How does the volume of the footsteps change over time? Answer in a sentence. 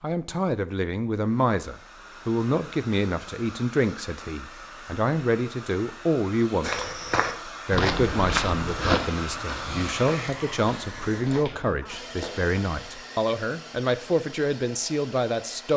The volume of the footsteps goes down.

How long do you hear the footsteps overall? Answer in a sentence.
The footsteps can be heard for 6 seconds in total.